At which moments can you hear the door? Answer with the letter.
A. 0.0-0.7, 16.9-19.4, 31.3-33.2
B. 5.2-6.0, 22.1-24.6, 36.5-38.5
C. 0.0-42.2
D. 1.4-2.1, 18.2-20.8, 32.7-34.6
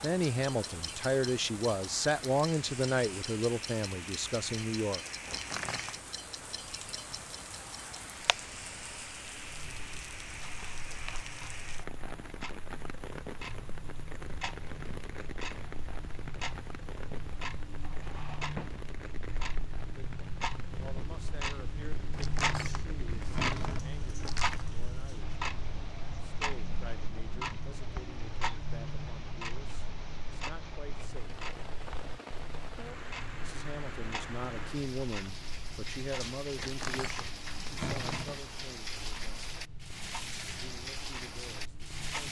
B.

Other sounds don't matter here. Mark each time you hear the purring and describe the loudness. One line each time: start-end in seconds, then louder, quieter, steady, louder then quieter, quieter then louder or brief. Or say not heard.
not heard.